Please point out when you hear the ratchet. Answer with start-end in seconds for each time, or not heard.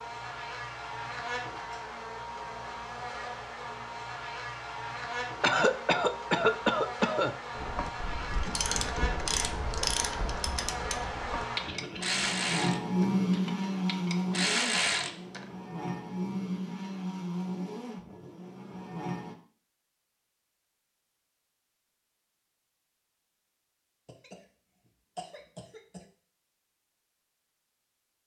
7.5-15.4.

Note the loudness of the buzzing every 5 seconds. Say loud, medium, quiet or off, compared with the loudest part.
medium, medium, loud, medium, off, off.